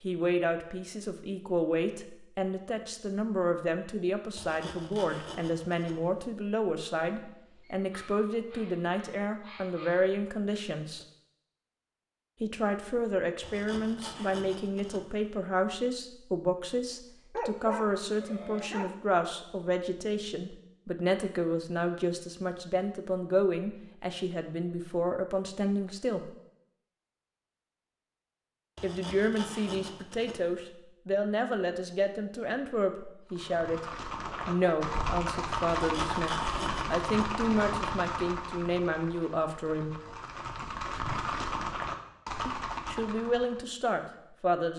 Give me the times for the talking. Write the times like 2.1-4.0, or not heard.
0.0-11.1, 12.4-26.3, 28.8-33.9, 34.5-39.9, 42.5-44.7.